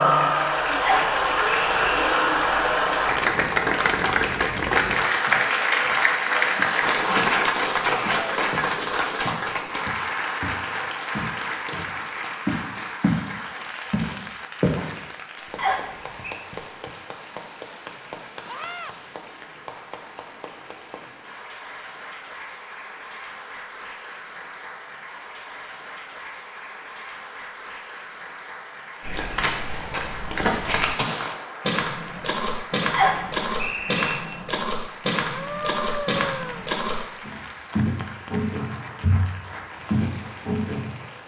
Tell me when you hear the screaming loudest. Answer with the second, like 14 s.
36 s.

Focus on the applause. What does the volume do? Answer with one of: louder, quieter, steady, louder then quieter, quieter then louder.
quieter.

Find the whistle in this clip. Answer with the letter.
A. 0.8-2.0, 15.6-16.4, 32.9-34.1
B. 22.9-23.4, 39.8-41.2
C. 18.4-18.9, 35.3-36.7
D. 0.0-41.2
A.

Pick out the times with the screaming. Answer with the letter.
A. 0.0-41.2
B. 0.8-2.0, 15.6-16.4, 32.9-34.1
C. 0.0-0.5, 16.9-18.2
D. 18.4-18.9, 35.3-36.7
D.